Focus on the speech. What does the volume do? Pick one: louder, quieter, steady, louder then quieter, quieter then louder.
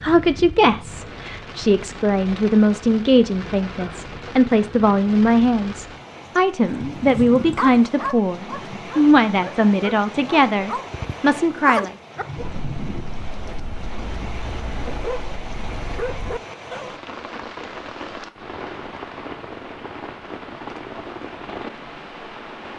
steady.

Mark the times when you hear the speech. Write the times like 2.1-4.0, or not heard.
0.0-11.9.